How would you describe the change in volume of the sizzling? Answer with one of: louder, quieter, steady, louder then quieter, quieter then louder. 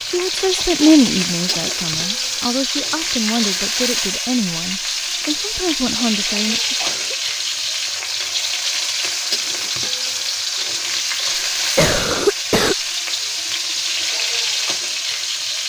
steady.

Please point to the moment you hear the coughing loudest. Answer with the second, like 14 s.
12 s.